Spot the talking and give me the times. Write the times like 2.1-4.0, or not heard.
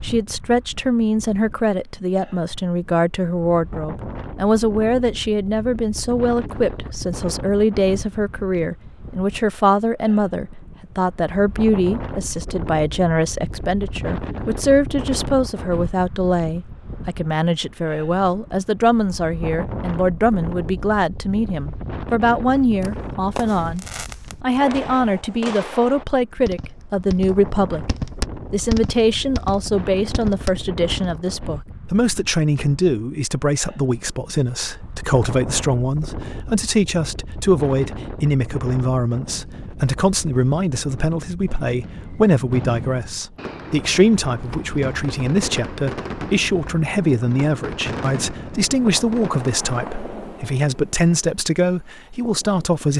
0.0-27.9, 28.5-52.9.